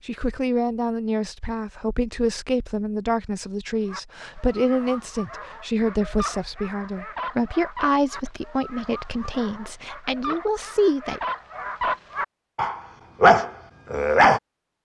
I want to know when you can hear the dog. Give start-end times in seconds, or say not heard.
3.9-14.4.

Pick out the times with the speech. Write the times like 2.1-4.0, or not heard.
0.1-11.2.